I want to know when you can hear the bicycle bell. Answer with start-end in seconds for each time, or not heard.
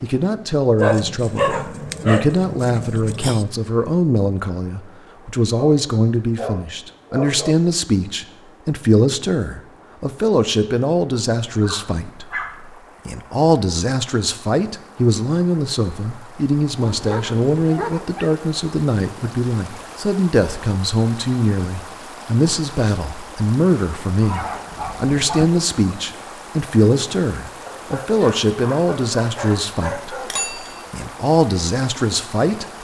30.2-30.9.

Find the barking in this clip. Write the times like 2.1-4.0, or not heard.
0.8-3.5, 5.5-7.5, 11.5-12.7, 16.8-18.3, 24.2-25.4, 27.6-30.6.